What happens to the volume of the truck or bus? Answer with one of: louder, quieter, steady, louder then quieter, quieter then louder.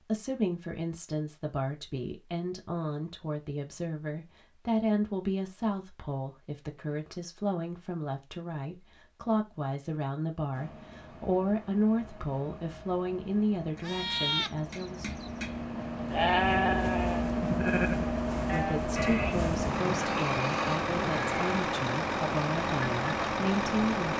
louder.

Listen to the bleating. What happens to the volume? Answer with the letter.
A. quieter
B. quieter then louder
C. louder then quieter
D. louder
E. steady
C.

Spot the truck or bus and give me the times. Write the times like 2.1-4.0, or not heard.
10.5-24.1.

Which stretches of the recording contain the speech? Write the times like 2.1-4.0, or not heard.
0.1-15.2, 18.5-24.1.